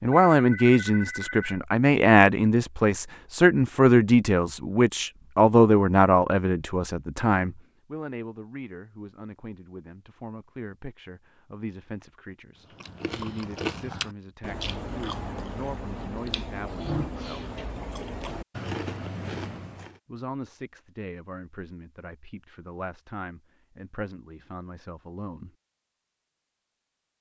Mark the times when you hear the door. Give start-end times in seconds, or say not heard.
not heard.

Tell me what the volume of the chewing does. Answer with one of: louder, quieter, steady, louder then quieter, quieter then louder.
steady.